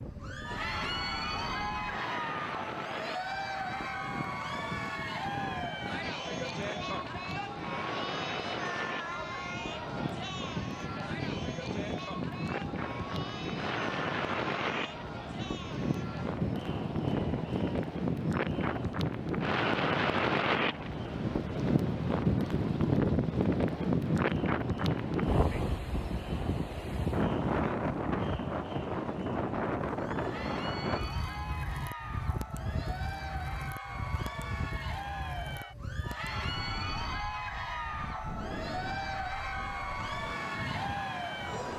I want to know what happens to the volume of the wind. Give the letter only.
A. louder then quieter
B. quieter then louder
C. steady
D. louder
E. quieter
A.